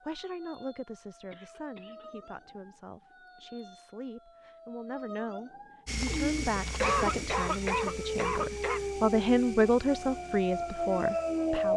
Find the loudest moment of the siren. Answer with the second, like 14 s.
11 s.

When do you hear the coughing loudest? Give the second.
7 s.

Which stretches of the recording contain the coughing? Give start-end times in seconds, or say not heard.
1.3-2.1, 6.0-8.8.